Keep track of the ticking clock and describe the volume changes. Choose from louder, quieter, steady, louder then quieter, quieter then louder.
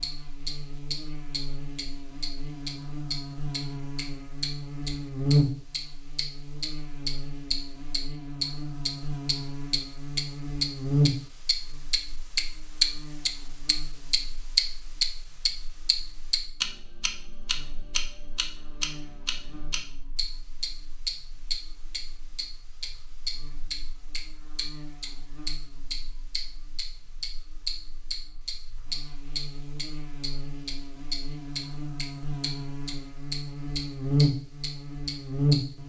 louder then quieter.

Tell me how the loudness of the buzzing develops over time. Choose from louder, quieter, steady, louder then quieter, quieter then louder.
quieter then louder.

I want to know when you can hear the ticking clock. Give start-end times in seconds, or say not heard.
0.0-35.5.